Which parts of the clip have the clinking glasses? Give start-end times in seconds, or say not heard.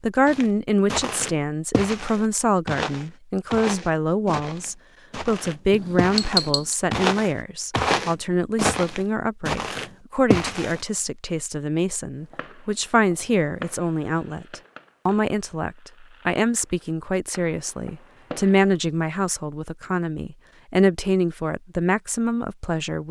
5.7-6.8.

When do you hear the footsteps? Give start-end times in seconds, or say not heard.
0.2-10.8.